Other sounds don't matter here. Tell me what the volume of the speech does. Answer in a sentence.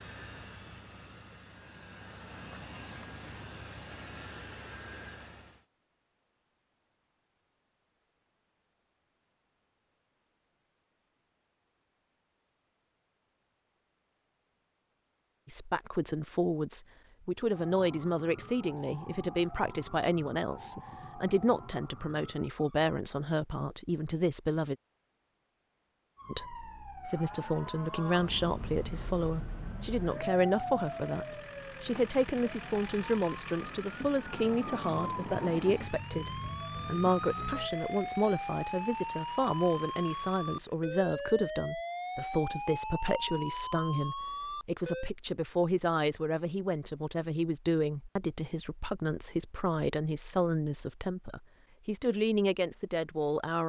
The volume of the speech stays about the same.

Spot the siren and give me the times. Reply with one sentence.
The siren can be heard from 17.5 to 22.9 s and from 26.1 to 45.1 s.